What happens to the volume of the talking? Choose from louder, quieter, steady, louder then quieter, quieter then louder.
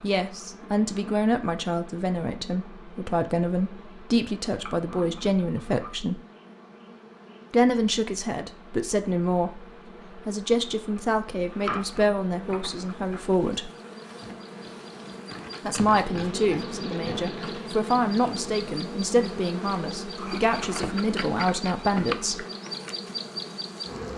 steady.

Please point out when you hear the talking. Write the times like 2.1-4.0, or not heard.
0.0-6.2, 7.5-13.7, 15.7-22.4.